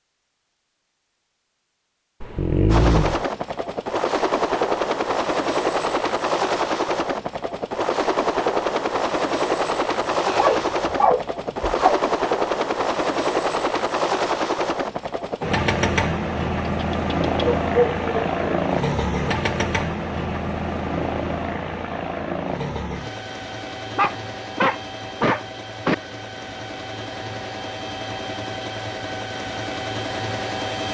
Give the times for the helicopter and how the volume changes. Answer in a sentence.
The helicopter can be heard from 2.6 to 30.8 s, getting quieter.